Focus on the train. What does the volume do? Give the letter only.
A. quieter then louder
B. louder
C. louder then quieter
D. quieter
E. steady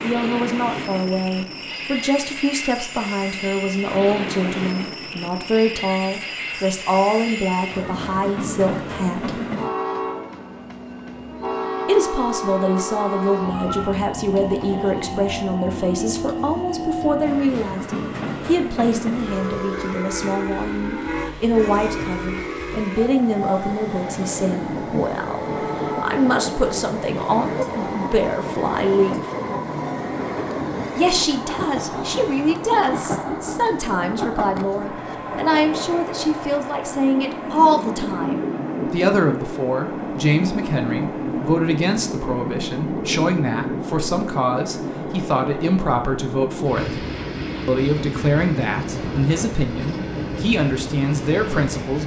E.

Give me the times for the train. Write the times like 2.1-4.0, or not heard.
0.0-52.0.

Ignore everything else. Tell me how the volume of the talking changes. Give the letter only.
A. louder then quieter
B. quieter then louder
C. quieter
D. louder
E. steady
E.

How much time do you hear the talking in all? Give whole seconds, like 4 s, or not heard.
47 s.